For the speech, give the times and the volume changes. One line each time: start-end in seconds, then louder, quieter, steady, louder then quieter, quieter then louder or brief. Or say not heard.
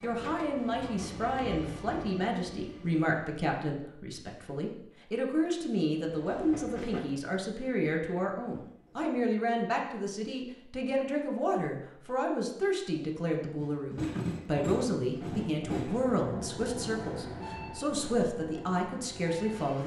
0.0-19.8 steady.